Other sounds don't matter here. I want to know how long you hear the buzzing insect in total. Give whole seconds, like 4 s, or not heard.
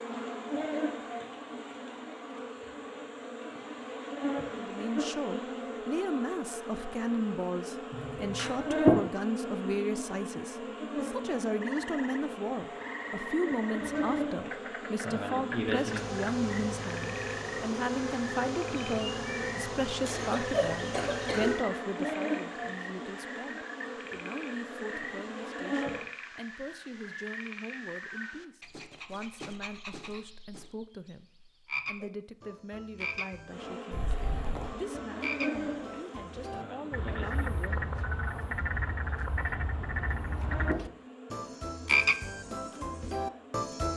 36 s.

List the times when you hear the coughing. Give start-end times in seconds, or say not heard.
7.9-8.7, 20.1-21.6, 33.9-34.8.